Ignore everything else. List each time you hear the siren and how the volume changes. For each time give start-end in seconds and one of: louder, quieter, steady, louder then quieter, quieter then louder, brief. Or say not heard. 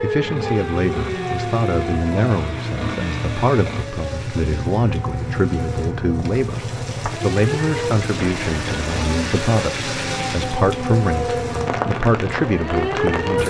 0.0-13.4 quieter then louder.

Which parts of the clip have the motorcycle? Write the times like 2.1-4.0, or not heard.
0.0-13.2.